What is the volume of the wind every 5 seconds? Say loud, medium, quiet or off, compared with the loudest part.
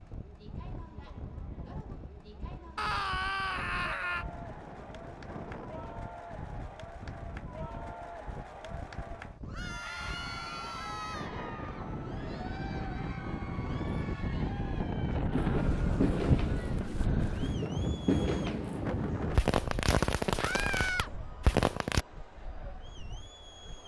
quiet, quiet, medium, loud, quiet.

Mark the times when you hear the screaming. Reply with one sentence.
You can hear the screaming from 2.8 to 4.2 s, from 9.5 to 11.3 s and from 20.4 to 21.1 s.